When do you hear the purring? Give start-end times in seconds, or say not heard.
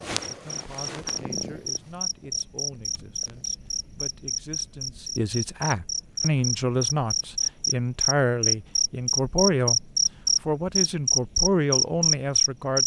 0.0-3.7.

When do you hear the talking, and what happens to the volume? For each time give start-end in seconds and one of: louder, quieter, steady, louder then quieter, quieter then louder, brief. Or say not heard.
0.1-12.8 louder.